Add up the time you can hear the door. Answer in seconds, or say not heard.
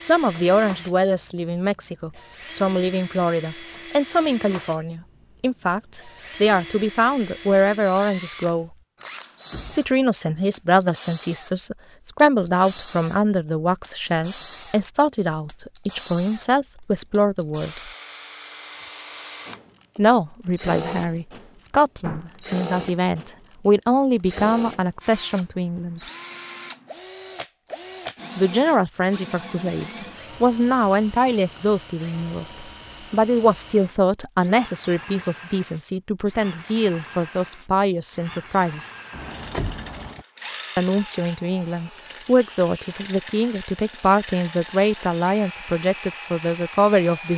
3 s.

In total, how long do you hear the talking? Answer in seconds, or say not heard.
40 s.